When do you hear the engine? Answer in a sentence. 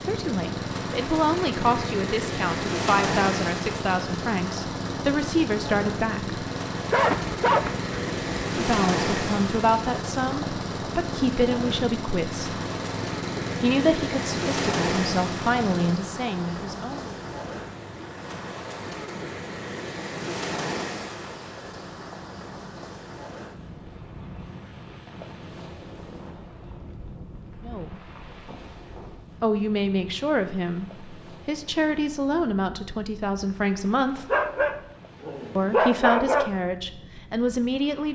The engine can be heard from 0.0 to 16.0 s.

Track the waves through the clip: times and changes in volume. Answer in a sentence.
You can hear the waves from 0.0 to 38.1 s, getting quieter.